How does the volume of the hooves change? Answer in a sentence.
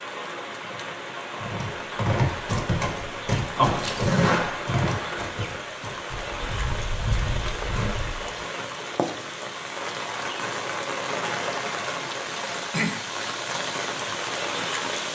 The volume of the hooves goes down, then up.